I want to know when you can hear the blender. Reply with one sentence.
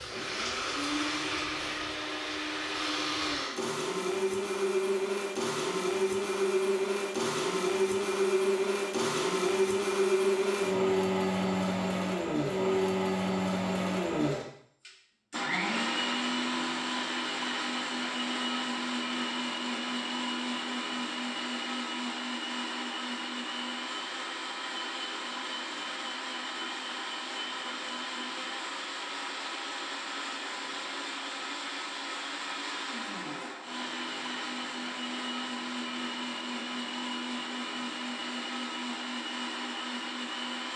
You can hear the blender from 0.0 to 40.7 s.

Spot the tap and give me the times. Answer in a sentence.
The tap can be heard from 0.0 to 3.5 s.